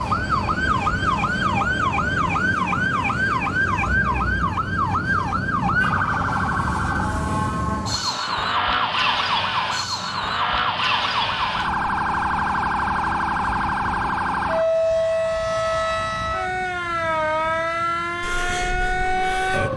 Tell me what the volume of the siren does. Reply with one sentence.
The loudness of the siren stays about the same.